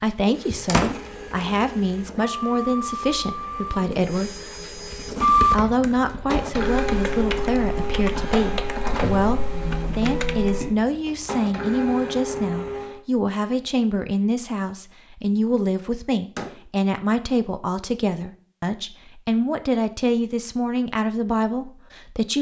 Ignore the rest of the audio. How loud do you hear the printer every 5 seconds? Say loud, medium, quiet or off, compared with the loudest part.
medium, loud, medium, off, off.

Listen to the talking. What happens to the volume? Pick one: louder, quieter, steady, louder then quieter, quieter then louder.
steady.